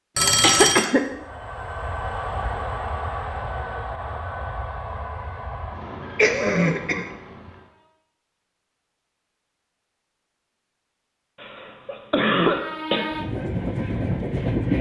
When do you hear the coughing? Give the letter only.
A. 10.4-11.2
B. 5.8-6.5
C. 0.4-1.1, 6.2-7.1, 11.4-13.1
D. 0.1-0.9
C.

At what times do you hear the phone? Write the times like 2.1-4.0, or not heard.
0.1-0.9.